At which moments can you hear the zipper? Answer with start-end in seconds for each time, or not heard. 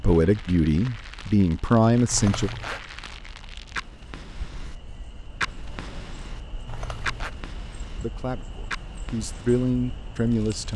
2.1-2.8, 6.7-7.3.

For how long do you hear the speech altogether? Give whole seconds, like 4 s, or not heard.
5 s.